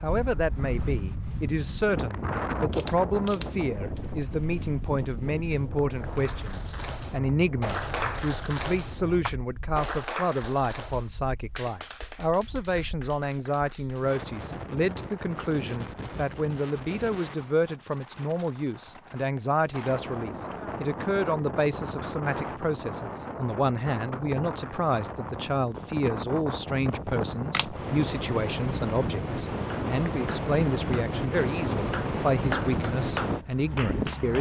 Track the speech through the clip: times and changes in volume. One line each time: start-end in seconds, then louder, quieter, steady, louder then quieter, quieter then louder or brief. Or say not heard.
0.0-34.3 steady.